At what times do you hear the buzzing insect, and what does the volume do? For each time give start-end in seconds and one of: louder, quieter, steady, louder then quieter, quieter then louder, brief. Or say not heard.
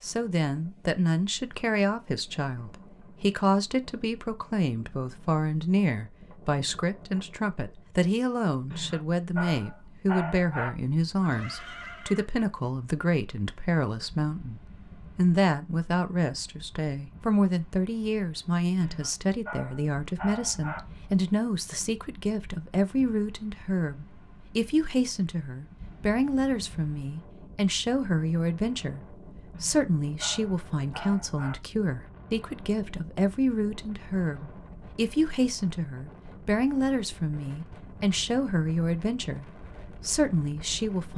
not heard.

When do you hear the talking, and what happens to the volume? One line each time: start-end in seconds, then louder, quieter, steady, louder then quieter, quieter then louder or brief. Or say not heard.
0.0-41.1 steady.